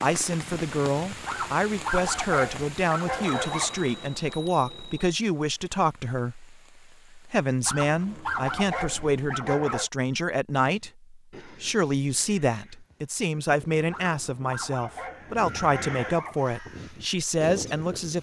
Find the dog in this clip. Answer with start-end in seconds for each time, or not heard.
1.2-3.9, 7.7-9.9, 13.9-16.5.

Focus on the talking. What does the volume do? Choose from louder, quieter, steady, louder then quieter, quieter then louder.
steady.